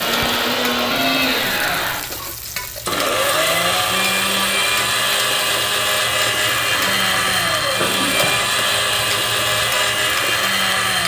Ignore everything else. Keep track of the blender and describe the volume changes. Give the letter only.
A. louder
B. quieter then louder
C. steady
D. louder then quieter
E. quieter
C.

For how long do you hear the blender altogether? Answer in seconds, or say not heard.
11 s.